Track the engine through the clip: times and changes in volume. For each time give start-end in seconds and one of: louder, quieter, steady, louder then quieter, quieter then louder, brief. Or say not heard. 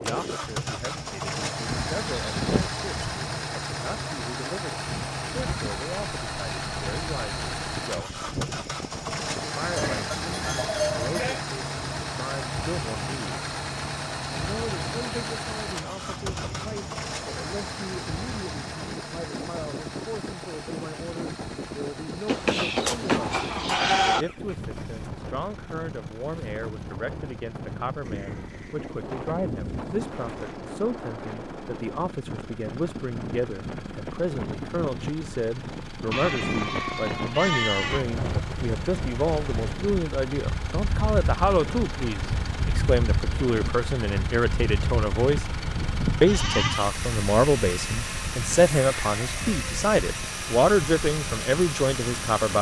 0.0-52.5 quieter then louder.